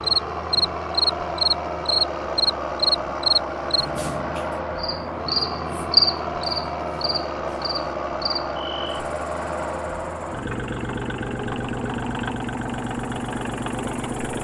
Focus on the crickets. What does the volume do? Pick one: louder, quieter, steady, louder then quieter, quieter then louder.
quieter.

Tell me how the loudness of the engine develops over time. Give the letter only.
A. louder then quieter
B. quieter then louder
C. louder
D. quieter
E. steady
E.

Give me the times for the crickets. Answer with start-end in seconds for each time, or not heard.
0.0-14.3.